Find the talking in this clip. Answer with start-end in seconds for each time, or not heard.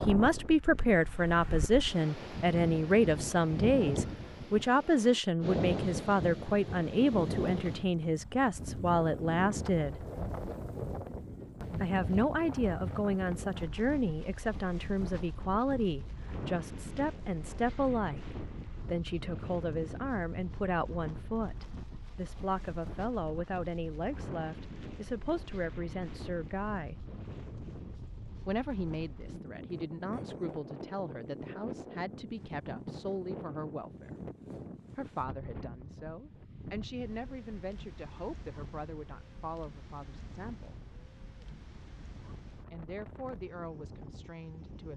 0.1-10.1, 11.8-27.1, 28.4-34.2, 35.0-40.8, 42.7-44.9.